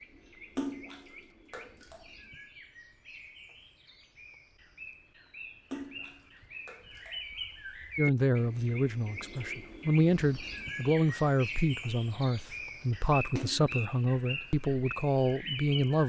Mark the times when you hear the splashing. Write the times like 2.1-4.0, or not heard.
0.6-2.0, 5.7-7.2, 13.3-13.8.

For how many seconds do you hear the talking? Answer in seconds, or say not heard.
8 s.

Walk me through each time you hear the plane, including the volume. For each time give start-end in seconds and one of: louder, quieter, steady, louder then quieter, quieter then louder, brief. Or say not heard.
not heard.